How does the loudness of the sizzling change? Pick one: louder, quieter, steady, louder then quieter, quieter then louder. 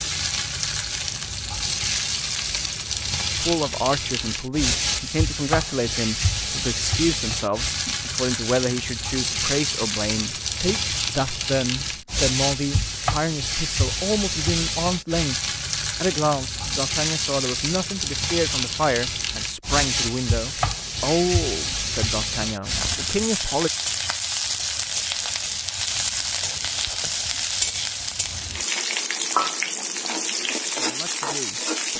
steady.